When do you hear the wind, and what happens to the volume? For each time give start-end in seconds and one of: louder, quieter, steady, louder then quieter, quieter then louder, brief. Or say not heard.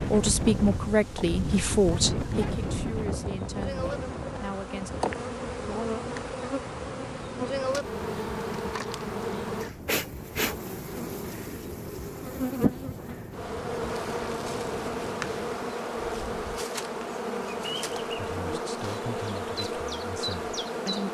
0.0-16.4 quieter.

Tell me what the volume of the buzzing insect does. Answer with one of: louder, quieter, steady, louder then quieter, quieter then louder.
louder.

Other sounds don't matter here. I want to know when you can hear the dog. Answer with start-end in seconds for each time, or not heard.
not heard.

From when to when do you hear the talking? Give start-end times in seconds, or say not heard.
0.1-4.9, 18.0-21.0.